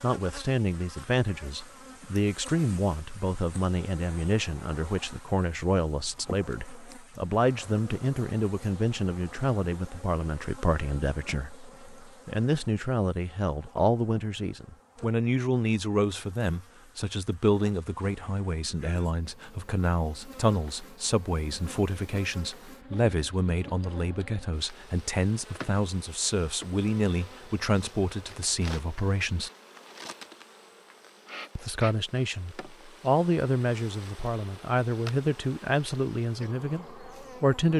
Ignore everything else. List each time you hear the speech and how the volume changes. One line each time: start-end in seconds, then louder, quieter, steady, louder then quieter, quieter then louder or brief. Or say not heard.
0.0-29.5 steady
31.6-37.7 louder then quieter.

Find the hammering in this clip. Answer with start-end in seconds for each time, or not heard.
not heard.